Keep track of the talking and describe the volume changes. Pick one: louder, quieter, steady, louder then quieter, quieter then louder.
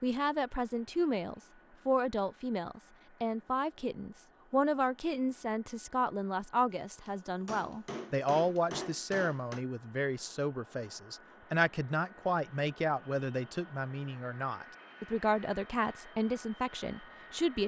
steady.